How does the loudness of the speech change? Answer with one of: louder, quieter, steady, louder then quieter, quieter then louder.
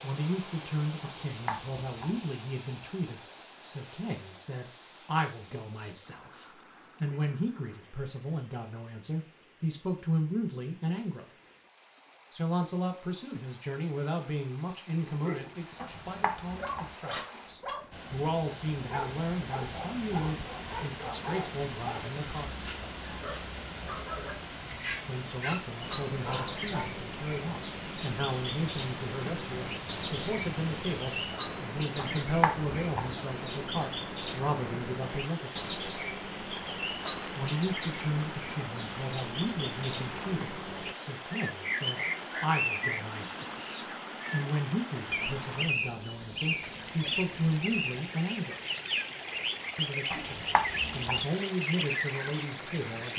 steady.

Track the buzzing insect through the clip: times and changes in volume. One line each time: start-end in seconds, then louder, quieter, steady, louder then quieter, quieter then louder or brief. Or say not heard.
not heard.